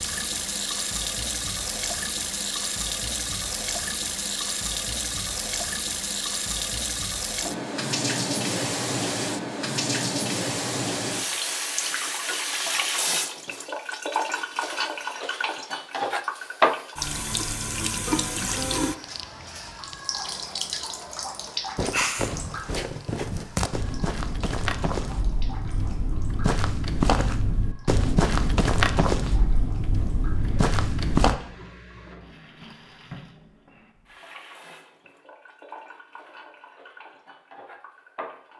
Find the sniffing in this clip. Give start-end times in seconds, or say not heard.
21.4-22.3.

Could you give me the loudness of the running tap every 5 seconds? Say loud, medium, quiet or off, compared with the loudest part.
loud, loud, loud, loud, medium, quiet, quiet, quiet.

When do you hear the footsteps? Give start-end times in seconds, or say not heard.
21.8-31.4.